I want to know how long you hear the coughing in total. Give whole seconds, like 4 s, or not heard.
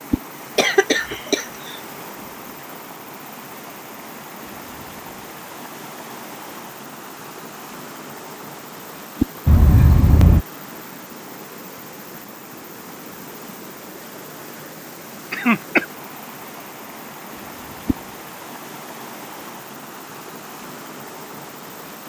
3 s.